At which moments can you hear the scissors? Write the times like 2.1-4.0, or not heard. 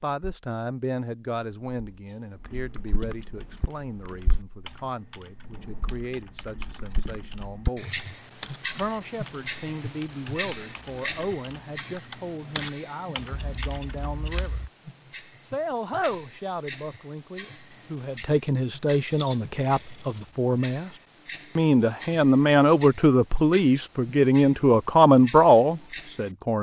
2.0-3.2, 13.3-14.7, 19.1-20.2.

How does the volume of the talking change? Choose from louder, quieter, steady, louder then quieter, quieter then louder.
louder.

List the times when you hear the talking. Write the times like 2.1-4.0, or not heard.
0.0-7.9, 8.8-14.6, 15.4-20.9, 21.6-26.5.